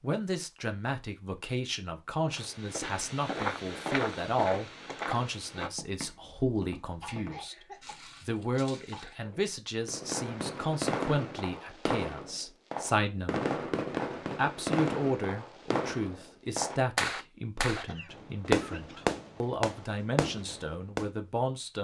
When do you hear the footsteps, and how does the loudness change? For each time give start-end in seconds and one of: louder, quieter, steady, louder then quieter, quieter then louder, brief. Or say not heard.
2.3-9.4 quieter.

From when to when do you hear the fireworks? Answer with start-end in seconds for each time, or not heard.
9.8-21.1.